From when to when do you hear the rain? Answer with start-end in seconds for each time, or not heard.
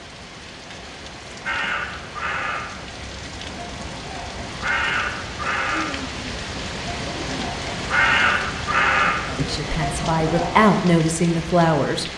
0.0-12.1.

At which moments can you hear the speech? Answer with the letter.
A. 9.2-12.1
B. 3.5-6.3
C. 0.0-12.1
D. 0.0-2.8
A.